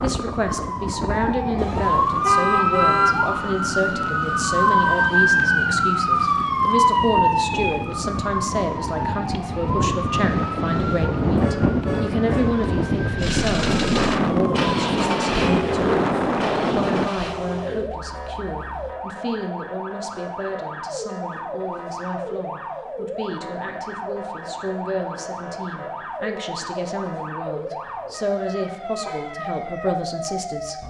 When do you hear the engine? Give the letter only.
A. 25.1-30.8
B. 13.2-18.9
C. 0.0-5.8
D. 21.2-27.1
B.